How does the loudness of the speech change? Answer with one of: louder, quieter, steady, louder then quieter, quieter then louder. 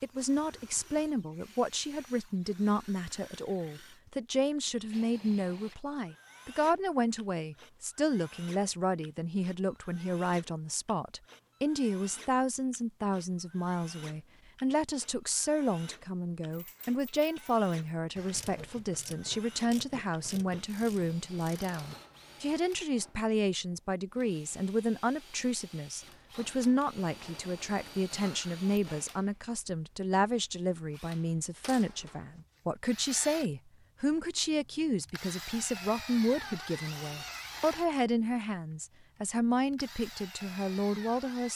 steady.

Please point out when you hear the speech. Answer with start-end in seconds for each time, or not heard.
0.0-41.5.